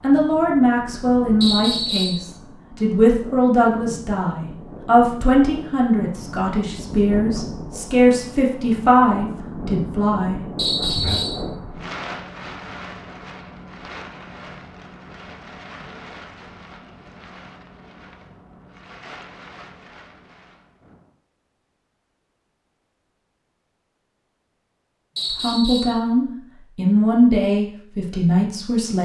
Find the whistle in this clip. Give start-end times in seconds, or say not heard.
1.4-2.2, 10.6-11.4, 25.1-26.0.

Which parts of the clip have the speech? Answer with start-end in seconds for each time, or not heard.
0.0-11.2, 25.3-28.9.